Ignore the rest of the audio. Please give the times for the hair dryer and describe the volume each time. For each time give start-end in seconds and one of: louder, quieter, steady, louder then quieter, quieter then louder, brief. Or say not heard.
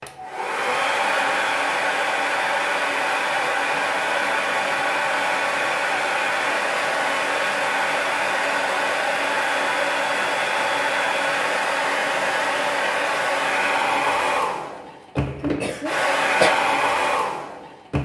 0.0-18.0 steady.